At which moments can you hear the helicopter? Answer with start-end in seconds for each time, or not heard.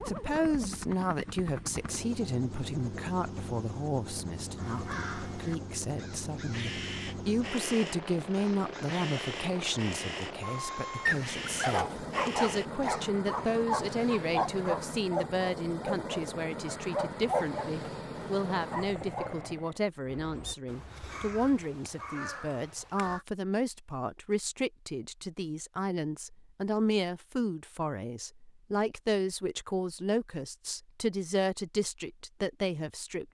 0.0-19.9.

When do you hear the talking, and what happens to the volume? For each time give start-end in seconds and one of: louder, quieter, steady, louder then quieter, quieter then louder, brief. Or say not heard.
0.1-33.2 steady.